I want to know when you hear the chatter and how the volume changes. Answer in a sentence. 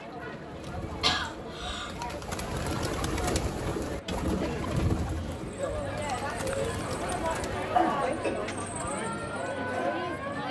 You can hear the chatter from 0.0 to 10.4 s, getting louder.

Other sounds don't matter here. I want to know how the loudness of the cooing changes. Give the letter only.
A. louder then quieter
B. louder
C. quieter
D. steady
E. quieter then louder
A.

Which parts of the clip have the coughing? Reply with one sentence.
The coughing can be heard from 1.0 to 1.9 s and from 7.7 to 8.7 s.